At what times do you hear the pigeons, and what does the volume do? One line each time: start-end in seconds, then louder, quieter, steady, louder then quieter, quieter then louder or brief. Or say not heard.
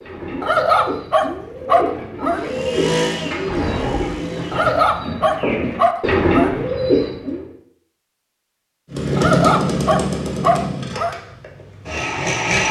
0.0-7.5 louder.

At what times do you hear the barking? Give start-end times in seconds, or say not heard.
0.4-2.5, 4.5-6.6, 9.2-11.2.